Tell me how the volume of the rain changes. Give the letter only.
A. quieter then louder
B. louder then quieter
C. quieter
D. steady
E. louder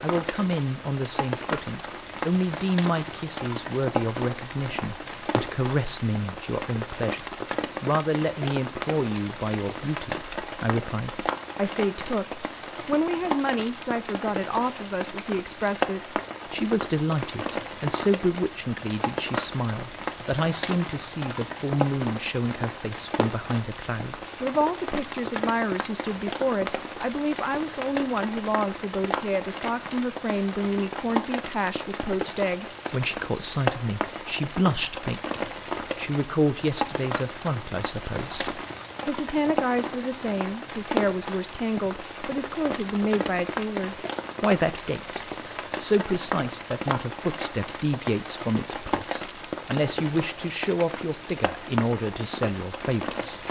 D.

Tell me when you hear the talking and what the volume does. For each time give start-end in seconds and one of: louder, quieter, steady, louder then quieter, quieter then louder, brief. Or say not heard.
0.0-53.4 steady.